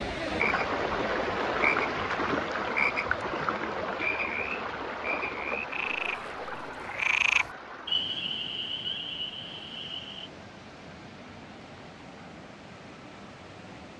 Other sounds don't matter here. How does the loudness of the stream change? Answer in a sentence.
The volume of the stream goes down.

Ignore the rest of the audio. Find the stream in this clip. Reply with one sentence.
You can hear the stream from 0.0 to 13.9 s.